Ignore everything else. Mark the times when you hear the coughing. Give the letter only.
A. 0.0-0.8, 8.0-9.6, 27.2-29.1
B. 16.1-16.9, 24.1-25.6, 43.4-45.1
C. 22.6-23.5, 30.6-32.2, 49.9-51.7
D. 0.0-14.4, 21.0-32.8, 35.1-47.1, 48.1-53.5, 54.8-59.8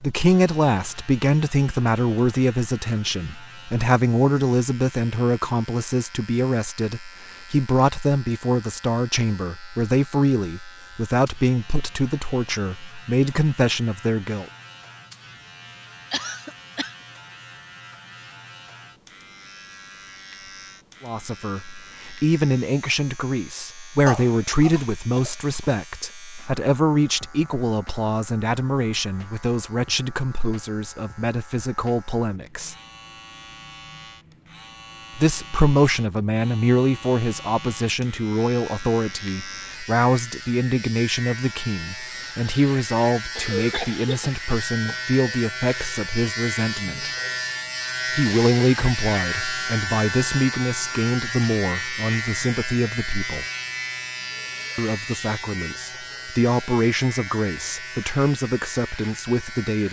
B.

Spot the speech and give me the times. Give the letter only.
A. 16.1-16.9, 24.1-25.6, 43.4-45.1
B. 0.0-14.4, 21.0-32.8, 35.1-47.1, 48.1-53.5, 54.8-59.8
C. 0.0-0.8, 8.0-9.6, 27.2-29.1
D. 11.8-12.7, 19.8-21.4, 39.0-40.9
B.